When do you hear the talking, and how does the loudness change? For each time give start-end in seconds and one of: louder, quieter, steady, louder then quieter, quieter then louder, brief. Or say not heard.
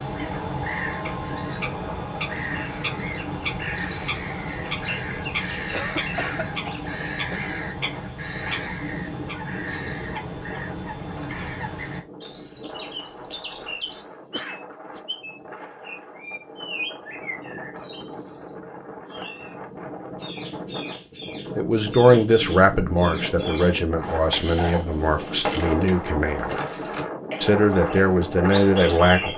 21.6-26.6 quieter
27.4-29.3 brief.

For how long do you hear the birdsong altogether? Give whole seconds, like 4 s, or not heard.
29 s.